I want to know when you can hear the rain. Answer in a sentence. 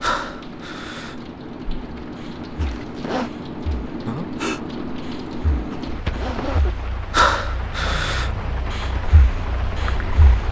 You can hear the rain from 0.0 to 10.4 s.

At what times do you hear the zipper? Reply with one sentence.
The zipper can be heard from 2.5 to 3.3 s and from 5.7 to 6.8 s.